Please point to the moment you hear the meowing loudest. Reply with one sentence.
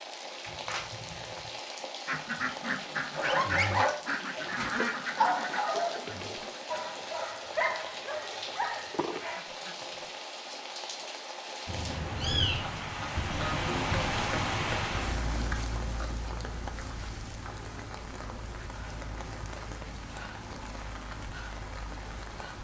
The loudest moment of the meowing is at 12 seconds.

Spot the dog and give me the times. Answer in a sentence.
You can hear the dog from 3.1 to 9.4 s.